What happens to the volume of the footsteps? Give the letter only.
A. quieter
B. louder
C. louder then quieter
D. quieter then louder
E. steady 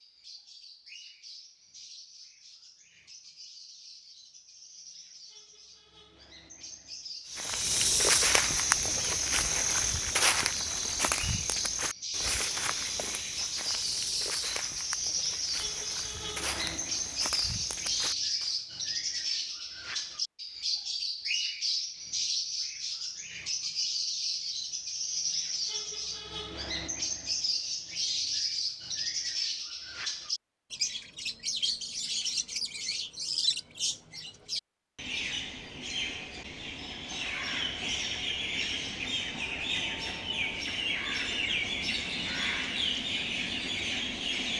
A.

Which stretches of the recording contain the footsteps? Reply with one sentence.
The footsteps can be heard from 7.3 to 18.6 s.